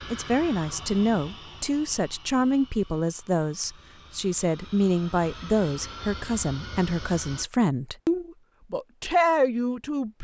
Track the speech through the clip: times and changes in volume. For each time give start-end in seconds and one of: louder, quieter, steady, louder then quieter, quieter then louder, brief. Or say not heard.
0.1-10.1 steady.